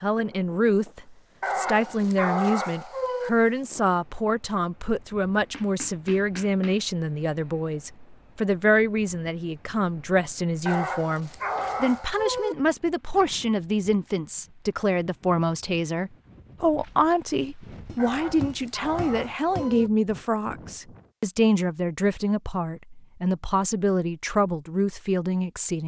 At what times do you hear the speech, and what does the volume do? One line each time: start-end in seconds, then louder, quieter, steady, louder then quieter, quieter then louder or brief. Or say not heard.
0.0-25.8 steady.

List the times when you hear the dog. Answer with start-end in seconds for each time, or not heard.
1.4-3.3, 10.7-12.6, 17.9-19.9.